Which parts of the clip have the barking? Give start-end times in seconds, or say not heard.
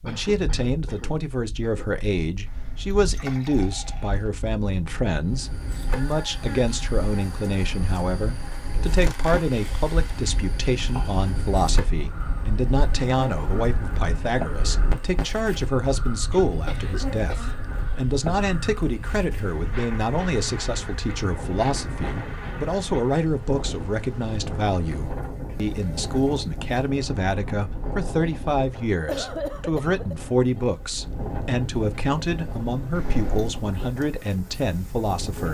not heard.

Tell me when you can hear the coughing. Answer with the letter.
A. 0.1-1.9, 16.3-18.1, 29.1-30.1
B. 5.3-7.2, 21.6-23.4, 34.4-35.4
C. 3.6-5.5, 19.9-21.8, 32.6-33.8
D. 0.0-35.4
A.